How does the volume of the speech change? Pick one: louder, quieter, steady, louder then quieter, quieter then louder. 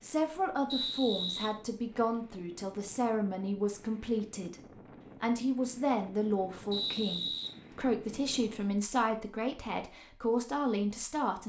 steady.